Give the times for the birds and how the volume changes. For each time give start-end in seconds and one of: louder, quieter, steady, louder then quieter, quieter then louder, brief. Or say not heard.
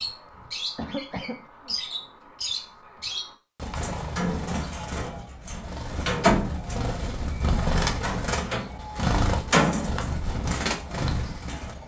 0.0-11.8 louder.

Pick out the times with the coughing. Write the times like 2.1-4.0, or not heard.
0.8-1.8.